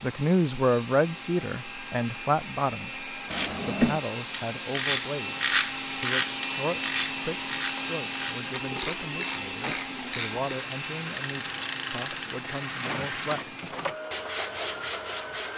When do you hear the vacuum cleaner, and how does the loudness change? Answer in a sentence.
The vacuum cleaner can be heard from 0.0 to 15.5 s, getting louder then quieter.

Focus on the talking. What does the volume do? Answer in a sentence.
The volume of the talking goes down.